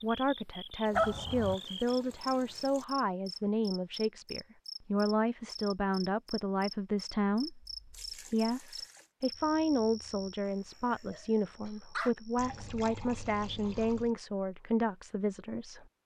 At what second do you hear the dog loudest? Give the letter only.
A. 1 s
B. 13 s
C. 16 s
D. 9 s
A.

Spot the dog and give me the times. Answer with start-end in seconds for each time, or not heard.
0.9-1.6, 10.8-12.1.